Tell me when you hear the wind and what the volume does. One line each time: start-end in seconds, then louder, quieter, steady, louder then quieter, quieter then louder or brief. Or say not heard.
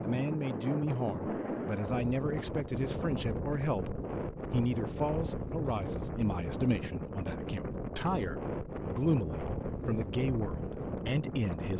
0.0-11.7 steady.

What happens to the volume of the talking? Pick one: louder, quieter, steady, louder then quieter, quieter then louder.
steady.